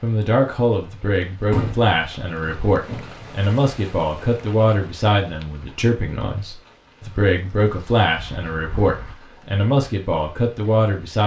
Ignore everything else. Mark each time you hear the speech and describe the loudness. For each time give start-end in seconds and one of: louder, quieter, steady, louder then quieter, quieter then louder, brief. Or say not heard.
0.0-11.2 steady.